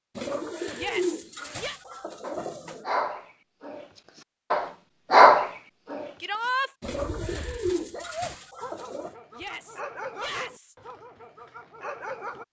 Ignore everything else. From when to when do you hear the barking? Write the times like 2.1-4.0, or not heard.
1.4-3.9, 4.5-6.1, 6.8-12.4.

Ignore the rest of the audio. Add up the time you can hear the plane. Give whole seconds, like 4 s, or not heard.
not heard.